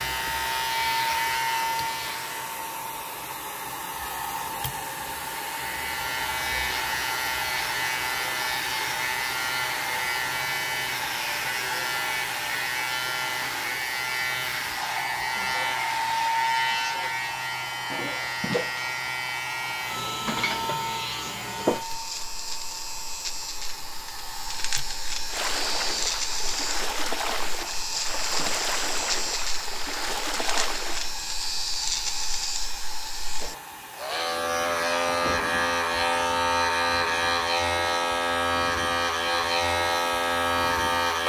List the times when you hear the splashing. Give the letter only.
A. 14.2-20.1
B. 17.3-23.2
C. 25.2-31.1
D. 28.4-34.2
C.